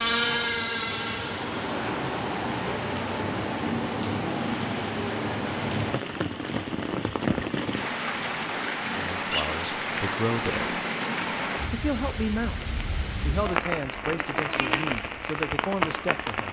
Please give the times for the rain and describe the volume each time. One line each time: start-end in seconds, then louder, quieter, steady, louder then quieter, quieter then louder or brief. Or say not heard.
0.0-16.4 steady.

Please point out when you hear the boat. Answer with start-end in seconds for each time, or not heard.
0.0-1.8.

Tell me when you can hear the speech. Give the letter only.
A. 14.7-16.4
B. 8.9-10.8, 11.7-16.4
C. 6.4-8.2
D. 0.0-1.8
B.